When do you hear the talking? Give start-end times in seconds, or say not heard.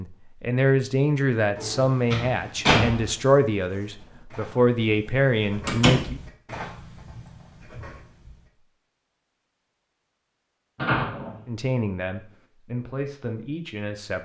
0.0-6.2, 11.4-14.2.